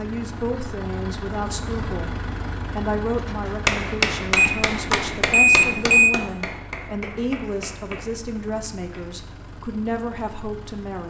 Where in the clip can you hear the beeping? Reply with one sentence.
The beeping can be heard from 4.3 to 6.2 s.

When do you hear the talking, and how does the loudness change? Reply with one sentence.
You can hear the talking from 0.0 to 11.0 s, at a steady volume.